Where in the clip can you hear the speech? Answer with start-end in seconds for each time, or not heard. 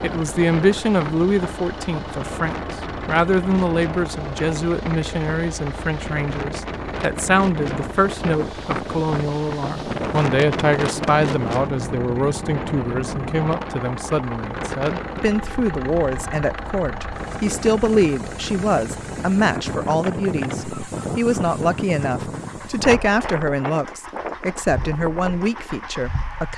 0.0-26.5.